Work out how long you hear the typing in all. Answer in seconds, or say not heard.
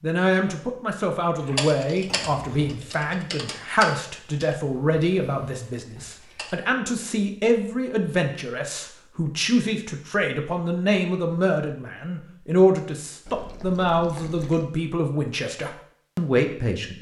5 s.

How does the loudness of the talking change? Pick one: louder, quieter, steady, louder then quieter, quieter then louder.
steady.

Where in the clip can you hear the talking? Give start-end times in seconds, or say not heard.
0.0-16.9.